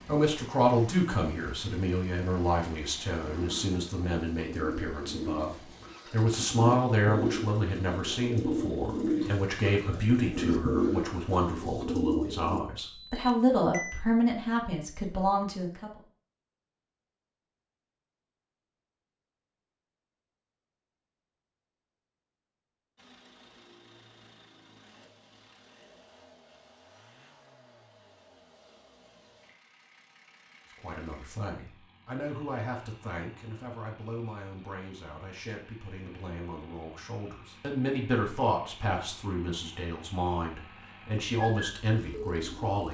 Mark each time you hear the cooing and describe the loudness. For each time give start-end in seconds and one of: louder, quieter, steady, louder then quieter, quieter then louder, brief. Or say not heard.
3.2-12.6 louder
41.4-42.8 brief.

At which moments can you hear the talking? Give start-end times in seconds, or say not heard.
0.1-15.9, 30.8-42.8.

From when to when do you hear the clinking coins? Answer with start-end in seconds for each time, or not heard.
not heard.